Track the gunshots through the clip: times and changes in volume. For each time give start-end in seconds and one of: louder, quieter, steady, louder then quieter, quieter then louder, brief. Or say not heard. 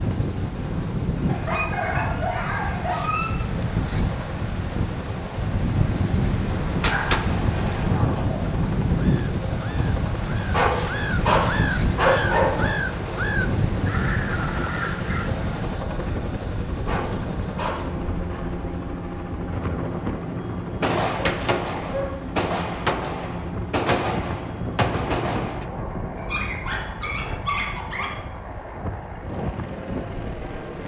6.8-8.2 brief
20.8-25.6 steady.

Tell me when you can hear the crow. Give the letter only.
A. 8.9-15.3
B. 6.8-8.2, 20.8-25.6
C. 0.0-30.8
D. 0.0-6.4
A.